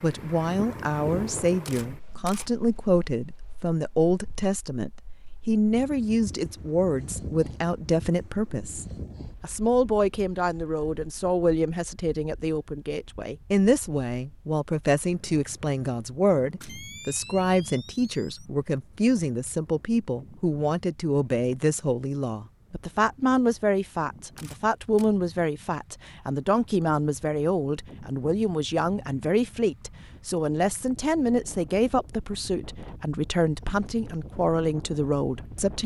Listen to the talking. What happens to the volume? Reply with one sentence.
The volume of the talking stays about the same.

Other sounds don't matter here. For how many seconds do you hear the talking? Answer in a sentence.
You can hear the talking for 36 seconds altogether.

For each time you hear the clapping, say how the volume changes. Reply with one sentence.
The clapping can't be heard in this clip.